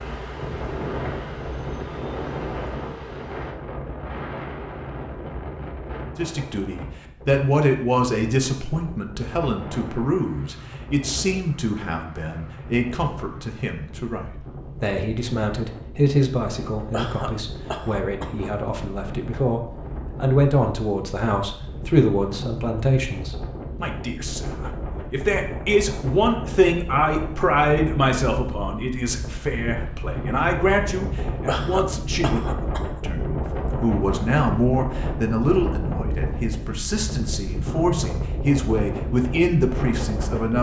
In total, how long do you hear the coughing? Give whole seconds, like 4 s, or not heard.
3 s.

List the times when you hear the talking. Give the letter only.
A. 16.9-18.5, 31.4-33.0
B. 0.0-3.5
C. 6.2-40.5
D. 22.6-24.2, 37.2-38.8
C.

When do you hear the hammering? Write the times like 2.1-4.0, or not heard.
not heard.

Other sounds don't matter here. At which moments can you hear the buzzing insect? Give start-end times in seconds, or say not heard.
0.0-3.5.